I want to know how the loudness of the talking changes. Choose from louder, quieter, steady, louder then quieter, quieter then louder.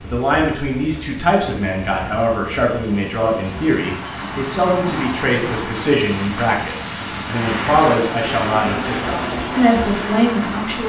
steady.